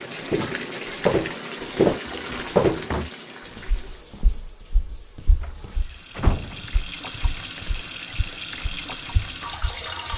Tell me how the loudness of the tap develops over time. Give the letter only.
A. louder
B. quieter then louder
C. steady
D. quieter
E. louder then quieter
B.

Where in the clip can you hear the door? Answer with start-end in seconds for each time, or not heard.
2.0-3.1, 5.4-6.8.